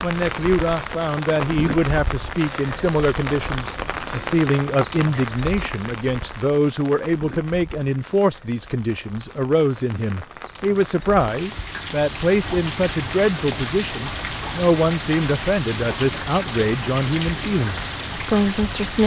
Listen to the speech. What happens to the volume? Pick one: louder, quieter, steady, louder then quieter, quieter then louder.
steady.